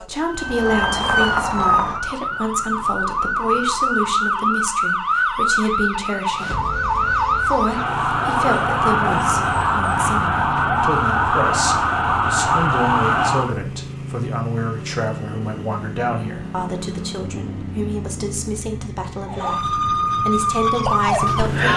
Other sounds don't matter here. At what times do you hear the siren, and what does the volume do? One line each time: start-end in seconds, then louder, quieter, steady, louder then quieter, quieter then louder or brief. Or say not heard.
0.0-13.6 steady
19.2-21.7 brief.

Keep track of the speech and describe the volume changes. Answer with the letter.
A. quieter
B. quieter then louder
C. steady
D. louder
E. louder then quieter
C.